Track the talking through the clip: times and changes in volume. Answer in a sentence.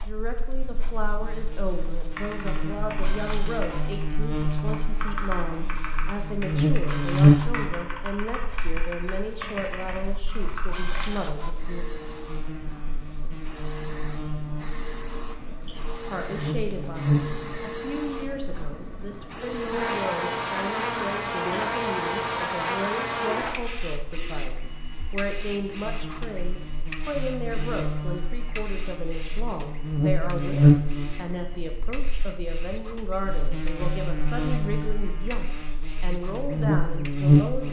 You can hear the talking from 0.0 to 11.8 s, at a steady volume; and from 16.1 to 37.6 s, at a steady volume.